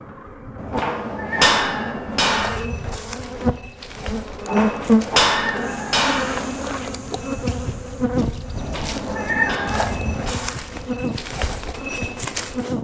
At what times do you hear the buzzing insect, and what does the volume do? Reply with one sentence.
The buzzing insect can be heard from 0.0 to 12.7 s, getting louder then quieter.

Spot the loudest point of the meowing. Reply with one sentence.
The loudest moment of the meowing is at 9 seconds.